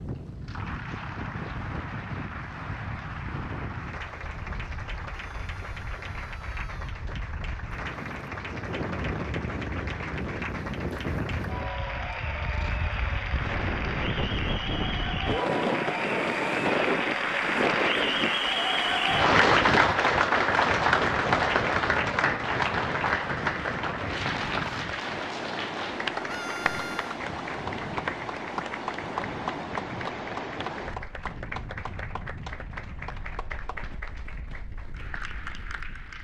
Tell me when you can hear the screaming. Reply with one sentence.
The screaming can be heard from 5.1 to 7.0 s and from 26.2 to 27.2 s.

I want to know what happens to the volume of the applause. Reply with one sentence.
The loudness of the applause goes up, then down.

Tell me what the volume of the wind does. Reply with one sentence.
The volume of the wind goes up, then down.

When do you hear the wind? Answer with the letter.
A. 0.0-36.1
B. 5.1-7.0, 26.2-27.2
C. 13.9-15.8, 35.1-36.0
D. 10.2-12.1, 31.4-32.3
A.